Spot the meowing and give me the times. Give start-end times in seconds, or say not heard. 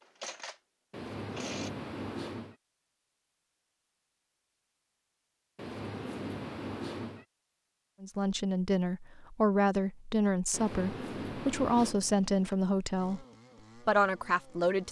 0.9-2.5, 5.5-7.2, 10.5-11.9.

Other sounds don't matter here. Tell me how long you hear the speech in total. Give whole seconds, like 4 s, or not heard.
6 s.